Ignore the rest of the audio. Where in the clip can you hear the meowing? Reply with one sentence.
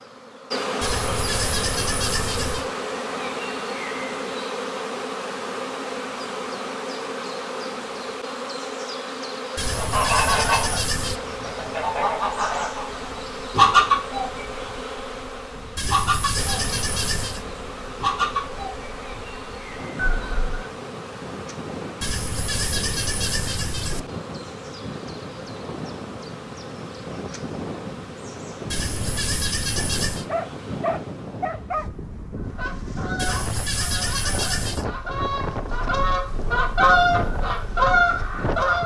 You can't hear the meowing here.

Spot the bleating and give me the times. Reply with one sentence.
You can hear the bleating from 0.8 to 2.7 s, from 9.6 to 11.2 s, from 15.8 to 17.4 s, from 22.0 to 24.0 s, from 28.7 to 30.2 s and from 33.1 to 34.9 s.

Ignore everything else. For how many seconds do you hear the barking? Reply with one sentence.
The barking can be heard for 2 seconds in total.